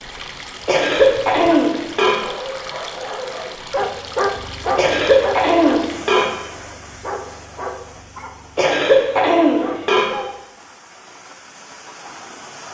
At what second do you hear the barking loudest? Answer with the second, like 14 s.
4 s.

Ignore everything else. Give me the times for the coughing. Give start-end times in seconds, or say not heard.
0.7-2.1, 4.8-6.2, 8.6-10.1.